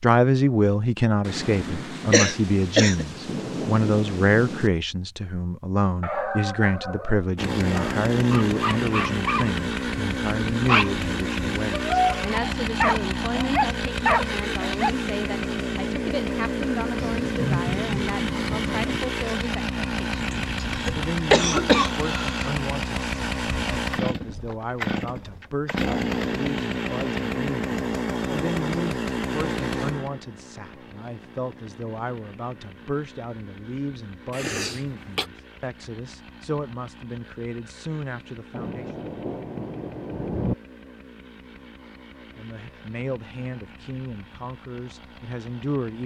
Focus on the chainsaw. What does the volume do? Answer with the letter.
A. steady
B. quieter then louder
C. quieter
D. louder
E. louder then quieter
C.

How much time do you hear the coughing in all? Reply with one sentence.
You can hear the coughing for 4 seconds altogether.